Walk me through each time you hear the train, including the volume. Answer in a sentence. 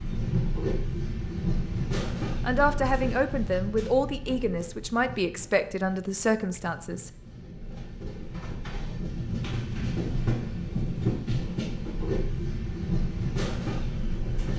You can hear the train from 0.0 to 14.5 s, getting quieter then louder.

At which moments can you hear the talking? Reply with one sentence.
The talking can be heard from 2.4 to 7.1 s.